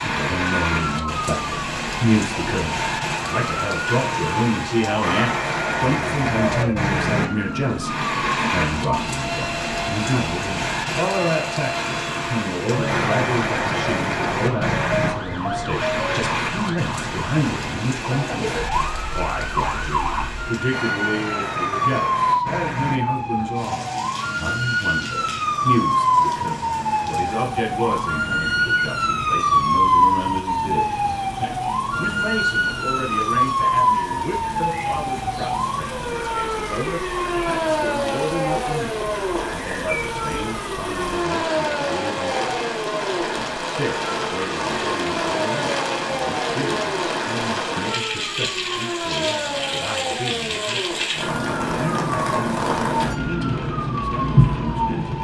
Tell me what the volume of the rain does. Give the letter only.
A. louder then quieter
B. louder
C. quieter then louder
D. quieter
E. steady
C.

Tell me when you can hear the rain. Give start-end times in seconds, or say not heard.
0.0-55.1.